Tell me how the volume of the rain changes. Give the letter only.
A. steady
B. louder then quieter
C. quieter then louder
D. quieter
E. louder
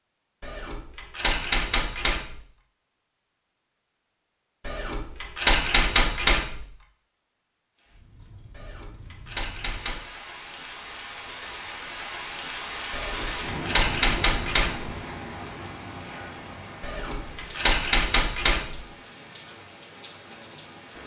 B.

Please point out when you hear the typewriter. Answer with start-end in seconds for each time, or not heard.
0.4-2.4, 4.7-6.6, 8.6-10.1, 12.9-14.9, 16.8-18.8.